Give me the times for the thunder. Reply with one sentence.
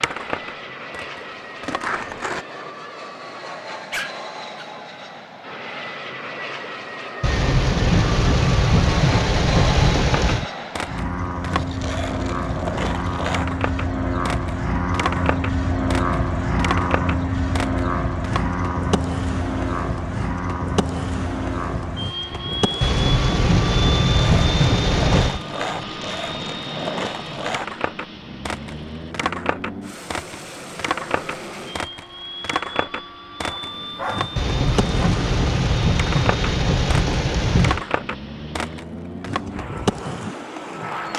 The thunder can be heard from 7.2 to 10.4 s, from 22.8 to 25.4 s and from 34.4 to 37.9 s.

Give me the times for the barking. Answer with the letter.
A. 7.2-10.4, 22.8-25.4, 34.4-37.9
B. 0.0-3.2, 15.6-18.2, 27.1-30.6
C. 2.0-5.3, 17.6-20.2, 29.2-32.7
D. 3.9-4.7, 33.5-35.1
D.